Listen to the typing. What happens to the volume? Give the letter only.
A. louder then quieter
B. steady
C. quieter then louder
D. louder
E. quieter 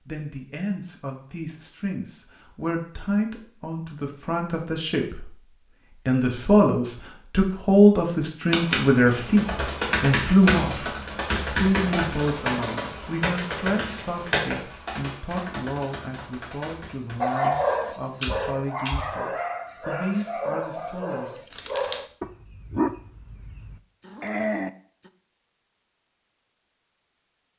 E.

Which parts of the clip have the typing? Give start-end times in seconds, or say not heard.
8.5-19.1.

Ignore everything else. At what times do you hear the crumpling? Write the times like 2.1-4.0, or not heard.
21.5-22.1.